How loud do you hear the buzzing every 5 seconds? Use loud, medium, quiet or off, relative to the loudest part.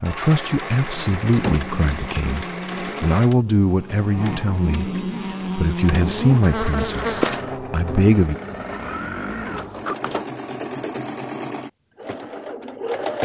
medium, loud, off.